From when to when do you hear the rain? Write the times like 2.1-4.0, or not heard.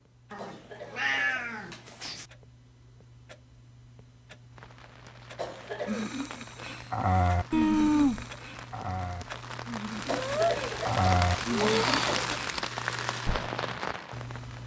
4.5-14.6.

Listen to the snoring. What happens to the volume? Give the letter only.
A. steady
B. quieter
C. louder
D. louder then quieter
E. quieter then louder
E.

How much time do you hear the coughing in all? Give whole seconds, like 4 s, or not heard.
5 s.